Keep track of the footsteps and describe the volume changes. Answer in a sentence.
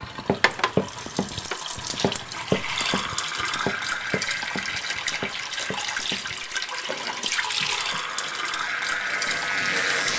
The loudness of the footsteps goes down.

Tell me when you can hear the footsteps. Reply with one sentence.
You can hear the footsteps from 0.0 to 7.3 s.